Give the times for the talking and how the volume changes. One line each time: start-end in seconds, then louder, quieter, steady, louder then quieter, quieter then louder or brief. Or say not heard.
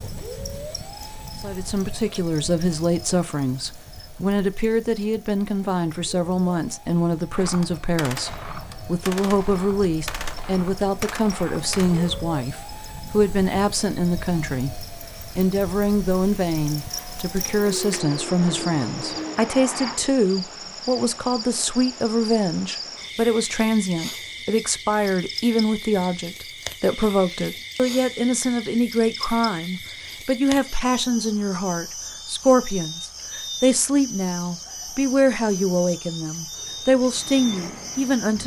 1.4-38.4 steady.